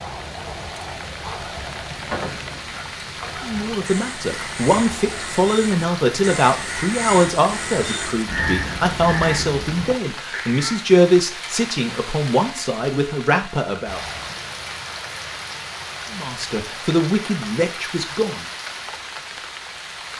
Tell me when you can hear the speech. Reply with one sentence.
The speech can be heard from 3.4 to 14.0 s and from 16.1 to 18.4 s.